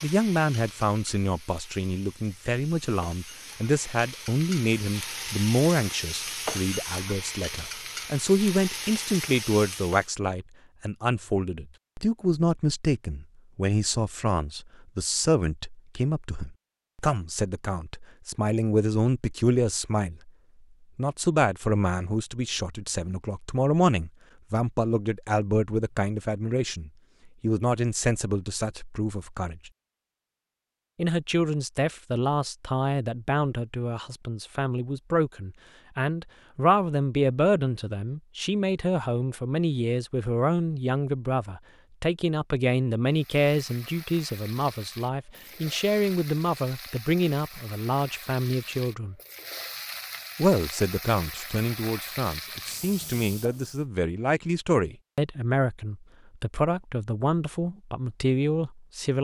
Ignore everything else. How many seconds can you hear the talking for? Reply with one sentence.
The talking can be heard for 56 seconds in total.